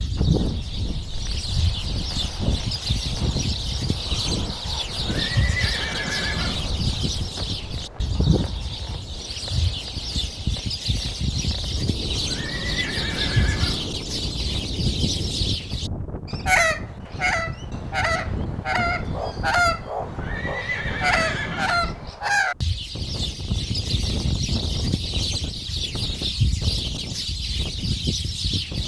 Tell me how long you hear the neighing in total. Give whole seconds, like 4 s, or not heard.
6 s.